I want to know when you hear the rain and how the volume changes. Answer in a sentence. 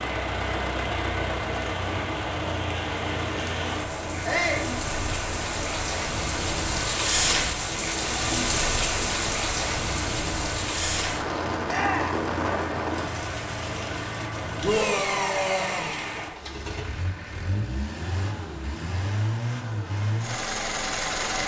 You can hear the rain from 0.0 to 16.4 s, getting louder then quieter.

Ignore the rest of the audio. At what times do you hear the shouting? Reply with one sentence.
The shouting can be heard from 4.2 to 4.7 s, from 11.7 to 12.2 s and from 14.6 to 15.9 s.